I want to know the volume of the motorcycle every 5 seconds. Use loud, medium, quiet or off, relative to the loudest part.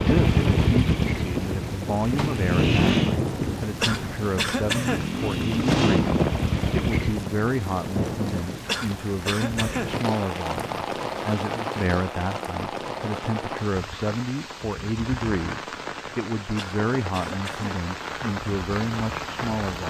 loud, loud, off, off.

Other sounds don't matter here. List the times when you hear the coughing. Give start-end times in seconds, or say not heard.
3.8-5.1, 8.7-10.0, 16.6-17.7.